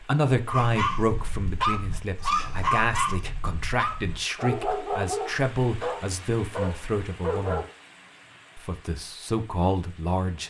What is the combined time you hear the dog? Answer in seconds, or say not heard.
7 s.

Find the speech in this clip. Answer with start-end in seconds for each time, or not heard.
0.0-7.7, 8.6-10.4.